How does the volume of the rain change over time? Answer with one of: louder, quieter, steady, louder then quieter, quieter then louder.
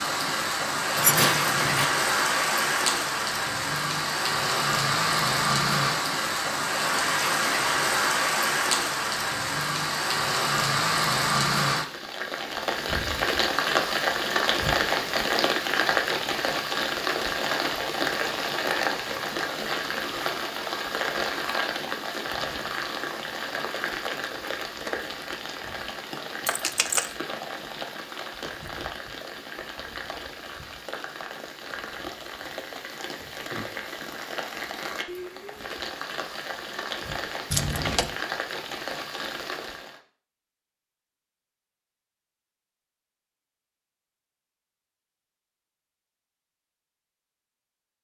quieter.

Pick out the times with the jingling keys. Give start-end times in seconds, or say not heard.
0.9-1.9, 26.4-27.1, 37.5-38.1.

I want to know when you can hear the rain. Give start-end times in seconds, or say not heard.
0.0-40.0.